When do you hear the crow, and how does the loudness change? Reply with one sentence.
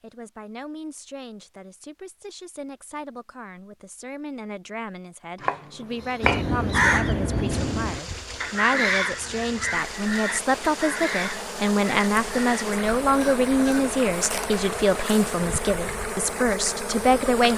You can hear the crow from 6.2 to 13.9 s, getting quieter.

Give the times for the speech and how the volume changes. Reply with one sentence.
You can hear the speech from 0.0 to 17.5 s, getting louder.